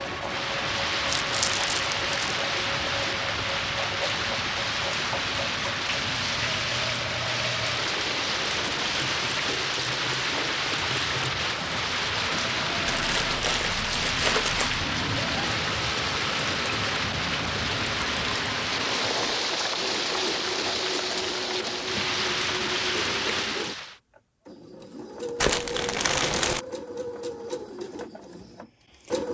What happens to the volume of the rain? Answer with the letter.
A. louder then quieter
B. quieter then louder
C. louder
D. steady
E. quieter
D.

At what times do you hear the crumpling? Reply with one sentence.
The crumpling can be heard from 1.1 to 2.4 s, from 12.8 to 14.8 s and from 25.4 to 26.6 s.